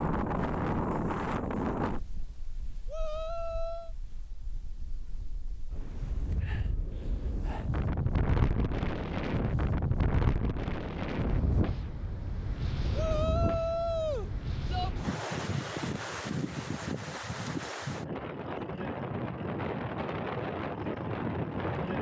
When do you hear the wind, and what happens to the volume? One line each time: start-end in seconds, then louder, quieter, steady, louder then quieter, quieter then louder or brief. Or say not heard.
0.0-21.9 steady.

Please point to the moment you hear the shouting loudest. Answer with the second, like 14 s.
14 s.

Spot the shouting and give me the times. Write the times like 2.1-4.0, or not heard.
2.9-4.0, 12.9-14.9.